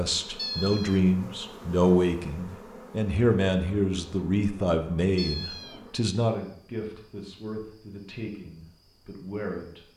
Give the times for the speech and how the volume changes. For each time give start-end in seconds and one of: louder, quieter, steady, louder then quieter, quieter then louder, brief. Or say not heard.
0.0-9.8 quieter.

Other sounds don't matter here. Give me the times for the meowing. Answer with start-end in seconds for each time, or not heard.
0.3-1.0, 5.2-5.8.